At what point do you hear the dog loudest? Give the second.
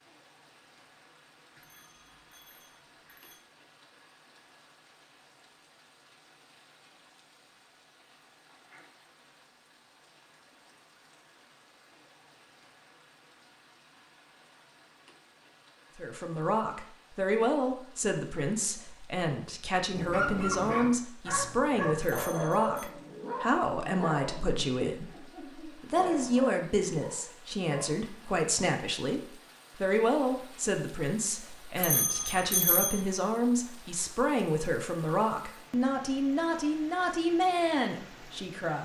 20 s.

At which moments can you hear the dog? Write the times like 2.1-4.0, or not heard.
19.9-28.0.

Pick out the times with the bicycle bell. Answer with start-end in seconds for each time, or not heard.
1.6-3.5, 22.2-22.9, 31.8-33.0.